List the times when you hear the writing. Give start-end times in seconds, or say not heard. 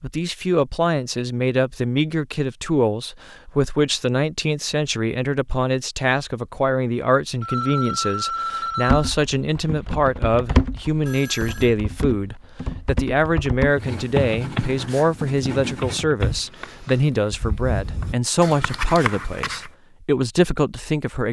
13.7-19.7.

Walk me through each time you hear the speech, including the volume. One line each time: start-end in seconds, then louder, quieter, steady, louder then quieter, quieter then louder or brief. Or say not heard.
0.0-21.2 steady.